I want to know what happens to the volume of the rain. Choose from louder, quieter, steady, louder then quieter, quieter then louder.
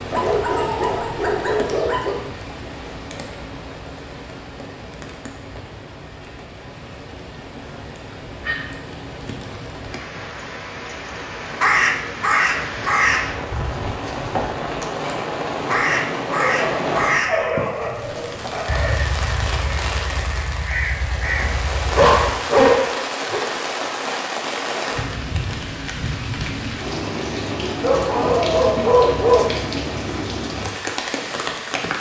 louder.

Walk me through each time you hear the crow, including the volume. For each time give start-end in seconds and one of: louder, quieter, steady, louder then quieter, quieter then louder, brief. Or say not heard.
11.6-22.4 quieter.